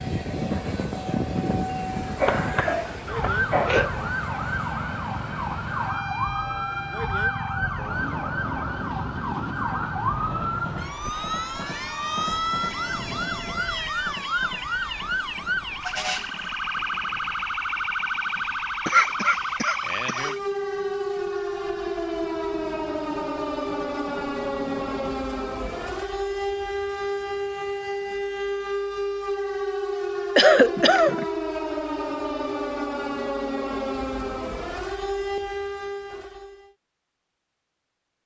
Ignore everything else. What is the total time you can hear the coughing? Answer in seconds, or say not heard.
4 s.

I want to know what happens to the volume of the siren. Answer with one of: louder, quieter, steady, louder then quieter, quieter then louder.
steady.